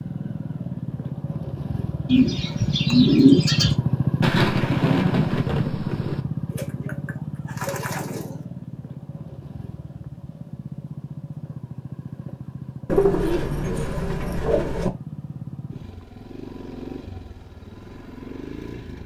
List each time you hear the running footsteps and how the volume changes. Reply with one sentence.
The running footsteps can't be heard in this clip.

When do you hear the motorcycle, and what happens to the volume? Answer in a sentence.
The motorcycle can be heard from 0.0 to 19.0 s, getting quieter.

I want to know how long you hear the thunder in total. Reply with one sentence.
You can hear the thunder for 2 seconds altogether.